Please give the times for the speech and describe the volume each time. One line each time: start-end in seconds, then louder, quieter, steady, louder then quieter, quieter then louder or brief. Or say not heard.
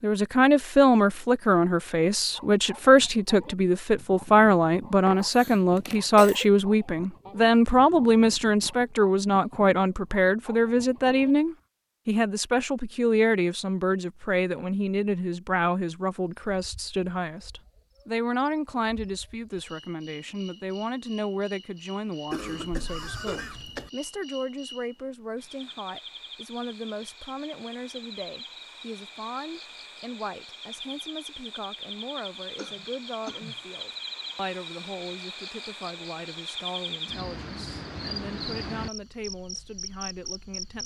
0.0-40.8 quieter.